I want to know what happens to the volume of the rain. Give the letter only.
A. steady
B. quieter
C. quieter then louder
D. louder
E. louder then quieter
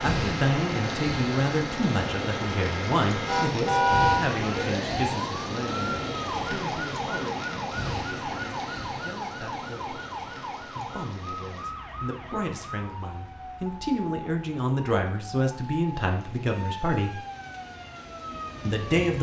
B.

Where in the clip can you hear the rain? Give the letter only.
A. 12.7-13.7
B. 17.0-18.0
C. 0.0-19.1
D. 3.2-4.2
C.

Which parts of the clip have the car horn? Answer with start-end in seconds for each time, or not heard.
3.2-4.2.